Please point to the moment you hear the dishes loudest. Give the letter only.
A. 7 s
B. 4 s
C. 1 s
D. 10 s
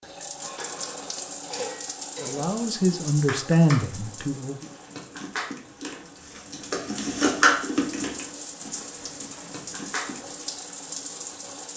A.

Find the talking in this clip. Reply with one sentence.
The talking can be heard from 2.2 to 4.7 s.